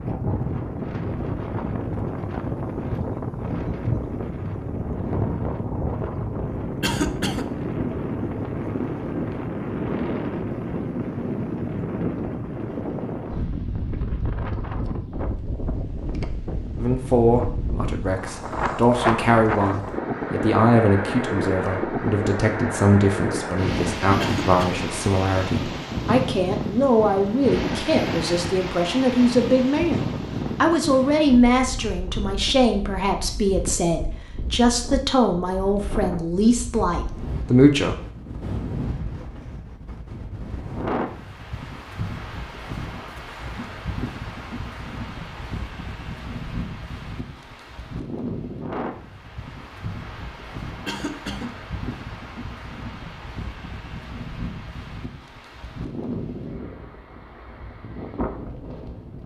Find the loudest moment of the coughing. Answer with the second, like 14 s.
7 s.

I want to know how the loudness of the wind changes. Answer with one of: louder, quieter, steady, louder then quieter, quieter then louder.
quieter.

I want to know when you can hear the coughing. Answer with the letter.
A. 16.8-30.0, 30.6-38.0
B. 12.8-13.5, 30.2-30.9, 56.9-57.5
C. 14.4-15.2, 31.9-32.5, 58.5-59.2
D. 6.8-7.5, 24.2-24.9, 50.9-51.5
D.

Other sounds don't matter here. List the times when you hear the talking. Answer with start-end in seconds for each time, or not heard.
16.8-30.0, 30.6-38.0.